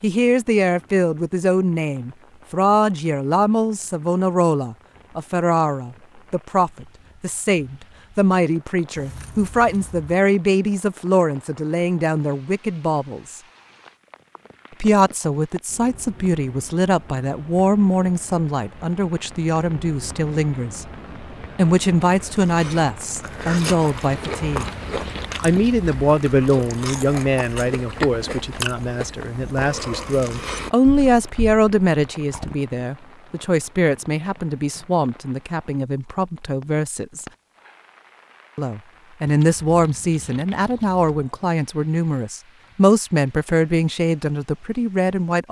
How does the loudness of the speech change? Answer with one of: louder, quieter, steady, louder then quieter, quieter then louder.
steady.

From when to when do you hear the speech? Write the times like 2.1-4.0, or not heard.
0.0-13.4, 14.8-20.9, 21.6-24.7, 25.4-37.2, 38.5-45.4.